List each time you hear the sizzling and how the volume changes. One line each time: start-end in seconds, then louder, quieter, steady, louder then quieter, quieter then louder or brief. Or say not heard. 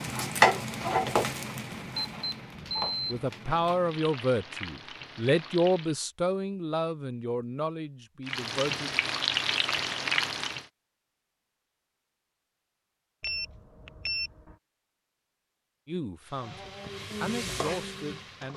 0.0-6.0 quieter
8.2-10.7 brief
16.2-18.5 brief.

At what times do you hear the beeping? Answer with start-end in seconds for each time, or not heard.
1.7-3.2, 13.2-14.6.